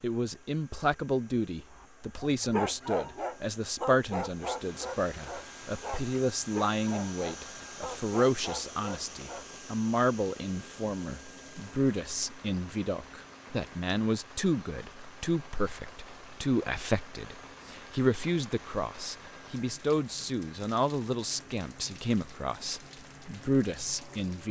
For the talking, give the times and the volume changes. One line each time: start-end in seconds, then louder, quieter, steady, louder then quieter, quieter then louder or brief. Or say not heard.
0.0-24.4 steady.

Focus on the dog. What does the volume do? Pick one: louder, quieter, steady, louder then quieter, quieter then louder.
quieter.